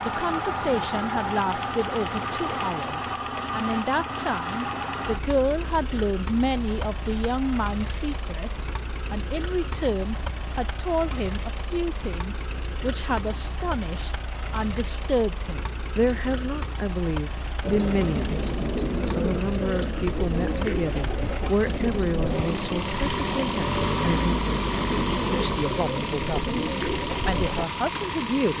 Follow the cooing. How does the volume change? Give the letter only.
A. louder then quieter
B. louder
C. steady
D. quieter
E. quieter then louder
C.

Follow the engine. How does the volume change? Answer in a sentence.
The loudness of the engine goes down, then up.